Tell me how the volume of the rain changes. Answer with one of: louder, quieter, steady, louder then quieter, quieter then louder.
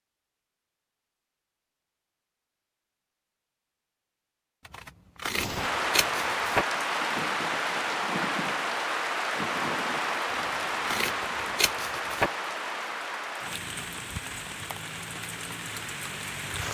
quieter.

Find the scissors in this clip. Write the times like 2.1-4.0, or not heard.
4.7-6.7, 10.3-12.3.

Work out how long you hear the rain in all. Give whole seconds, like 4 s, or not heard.
11 s.